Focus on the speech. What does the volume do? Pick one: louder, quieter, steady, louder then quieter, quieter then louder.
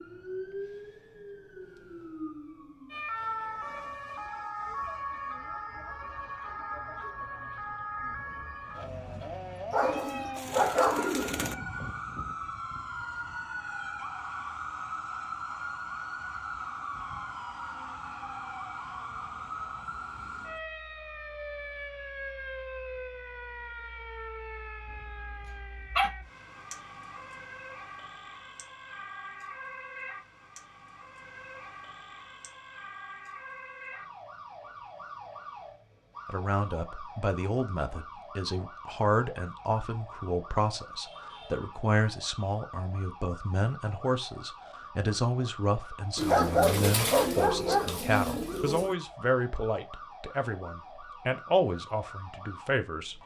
steady.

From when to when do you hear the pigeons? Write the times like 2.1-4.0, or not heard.
9.8-11.6, 46.1-49.0.